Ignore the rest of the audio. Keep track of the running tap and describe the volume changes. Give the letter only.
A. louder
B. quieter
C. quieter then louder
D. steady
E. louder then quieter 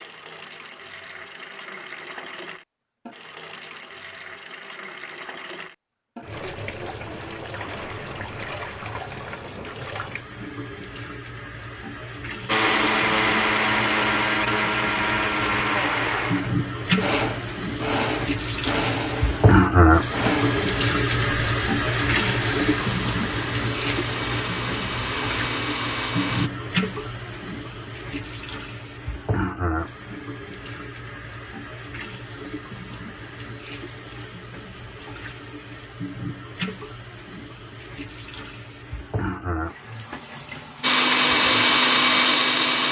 E.